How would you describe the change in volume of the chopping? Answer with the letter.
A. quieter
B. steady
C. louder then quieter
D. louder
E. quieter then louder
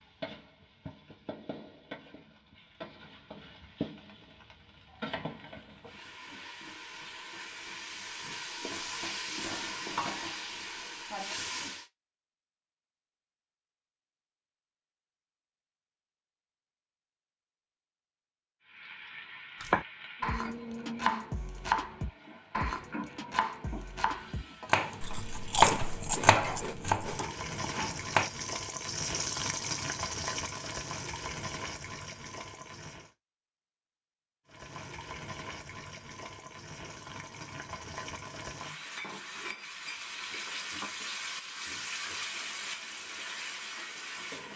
C.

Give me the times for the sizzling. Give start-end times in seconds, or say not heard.
0.0-11.8, 18.6-33.1, 34.5-44.5.